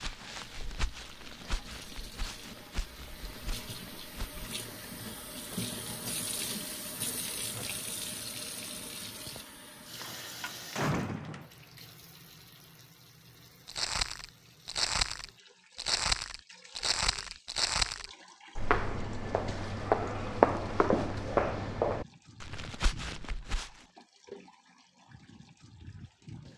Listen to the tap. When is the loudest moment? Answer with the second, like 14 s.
6 s.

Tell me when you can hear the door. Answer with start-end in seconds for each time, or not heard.
9.9-11.5.